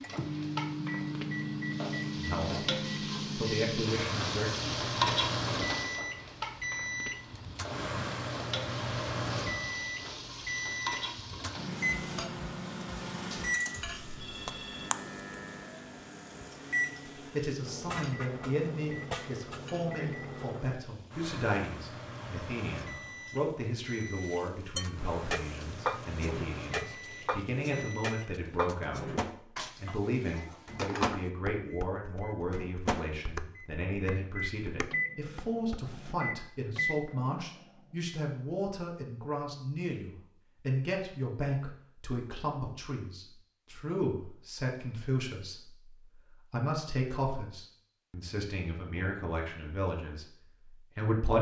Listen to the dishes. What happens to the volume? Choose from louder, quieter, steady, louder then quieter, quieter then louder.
quieter.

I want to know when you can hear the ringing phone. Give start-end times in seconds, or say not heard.
13.8-14.9.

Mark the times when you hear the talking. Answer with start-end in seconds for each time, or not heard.
2.1-2.6, 3.4-4.8, 17.3-29.1, 29.8-51.3.